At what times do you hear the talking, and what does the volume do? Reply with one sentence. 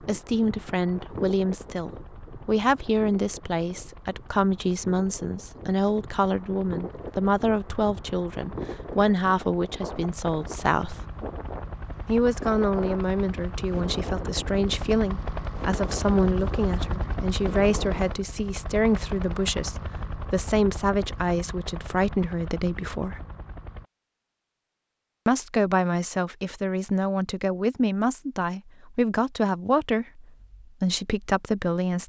The talking can be heard from 0.0 to 11.0 s, at a steady volume; from 12.1 to 23.2 s, at a steady volume; and from 25.2 to 32.0 s, at a steady volume.